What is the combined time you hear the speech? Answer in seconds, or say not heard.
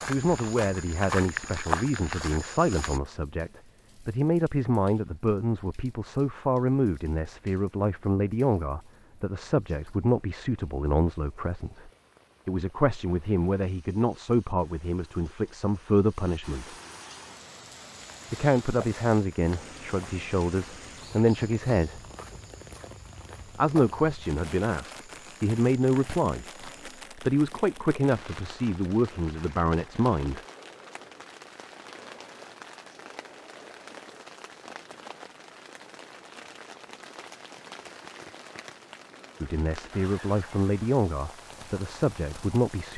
31 s.